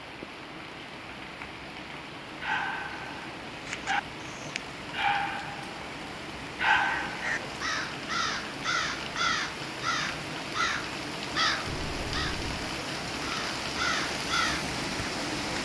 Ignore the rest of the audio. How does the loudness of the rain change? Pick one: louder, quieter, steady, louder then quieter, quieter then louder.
louder.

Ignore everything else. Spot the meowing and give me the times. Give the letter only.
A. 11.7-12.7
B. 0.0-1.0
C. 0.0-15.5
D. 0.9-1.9
A.